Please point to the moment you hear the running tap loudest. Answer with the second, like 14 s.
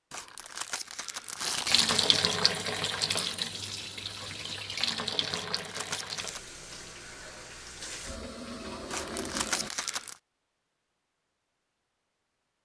2 s.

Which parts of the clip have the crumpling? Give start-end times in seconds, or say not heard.
0.1-2.1, 5.3-6.5, 8.9-10.2.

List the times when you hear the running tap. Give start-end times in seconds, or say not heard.
1.6-9.7.